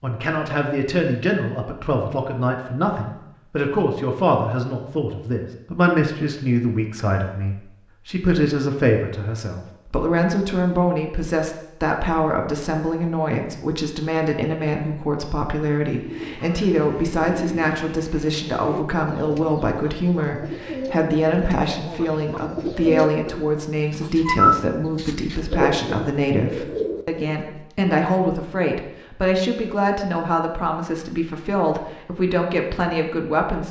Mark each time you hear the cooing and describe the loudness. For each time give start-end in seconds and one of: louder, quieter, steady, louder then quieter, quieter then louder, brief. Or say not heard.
15.9-27.6 louder then quieter.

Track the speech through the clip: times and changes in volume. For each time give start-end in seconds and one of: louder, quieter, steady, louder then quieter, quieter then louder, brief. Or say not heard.
0.0-33.6 steady.